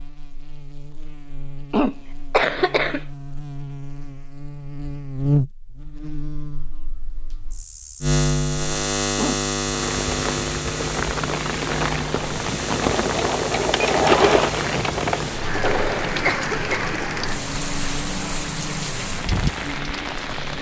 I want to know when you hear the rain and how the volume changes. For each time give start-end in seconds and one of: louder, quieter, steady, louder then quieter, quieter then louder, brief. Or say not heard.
9.7-20.5 steady.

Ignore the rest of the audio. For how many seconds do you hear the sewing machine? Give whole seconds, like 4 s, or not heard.
3 s.